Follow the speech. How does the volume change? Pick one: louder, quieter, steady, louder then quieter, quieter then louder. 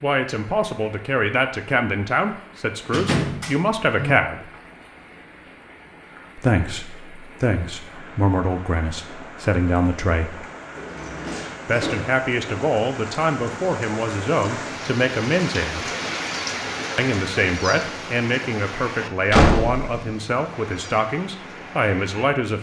steady.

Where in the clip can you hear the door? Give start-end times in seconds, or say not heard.
2.9-4.2, 10.8-12.2, 19.3-19.9.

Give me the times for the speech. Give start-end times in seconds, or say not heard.
0.0-4.5, 6.3-10.4, 11.7-15.8, 16.9-22.5.